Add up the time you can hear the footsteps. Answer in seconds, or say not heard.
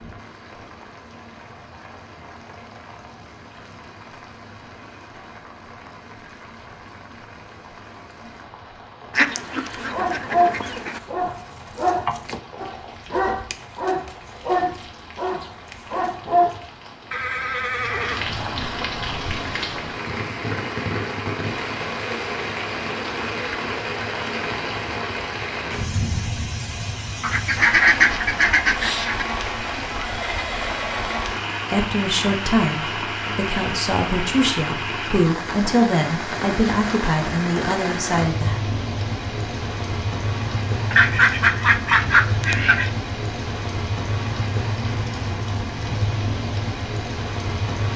not heard.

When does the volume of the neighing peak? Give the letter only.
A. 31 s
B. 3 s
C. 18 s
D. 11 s
C.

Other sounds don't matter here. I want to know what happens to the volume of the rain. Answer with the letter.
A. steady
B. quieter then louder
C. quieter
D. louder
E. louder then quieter
D.